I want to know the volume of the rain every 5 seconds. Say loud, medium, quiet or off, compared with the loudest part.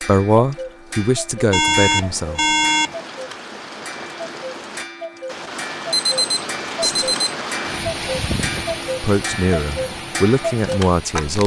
medium, loud, medium.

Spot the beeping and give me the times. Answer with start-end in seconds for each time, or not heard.
1.5-3.0, 5.9-7.4.